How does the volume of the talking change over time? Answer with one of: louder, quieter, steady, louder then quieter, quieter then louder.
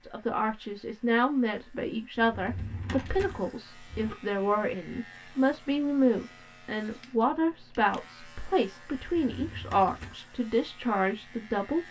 steady.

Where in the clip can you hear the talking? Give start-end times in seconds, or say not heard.
0.0-11.8.